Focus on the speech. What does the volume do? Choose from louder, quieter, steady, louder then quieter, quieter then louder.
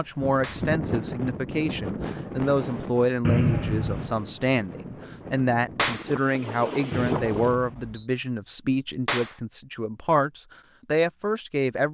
steady.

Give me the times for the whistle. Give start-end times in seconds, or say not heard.
3.2-4.2, 6.9-8.1.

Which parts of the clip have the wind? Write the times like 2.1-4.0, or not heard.
0.0-7.6.